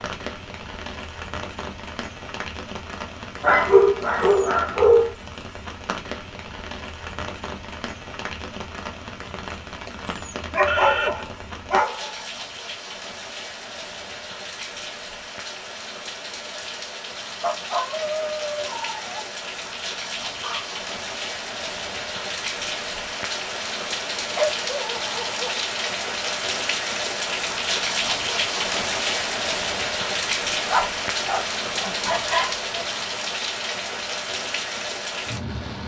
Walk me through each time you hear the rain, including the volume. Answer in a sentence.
You can hear the rain from 0.0 to 35.8 s, getting louder.